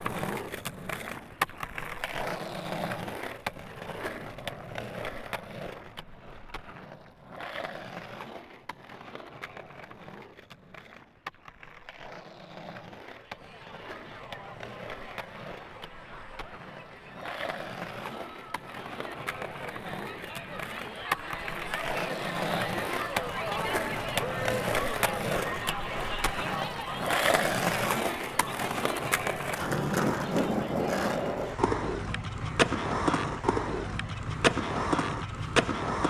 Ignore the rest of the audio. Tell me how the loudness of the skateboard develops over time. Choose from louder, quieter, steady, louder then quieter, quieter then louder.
quieter then louder.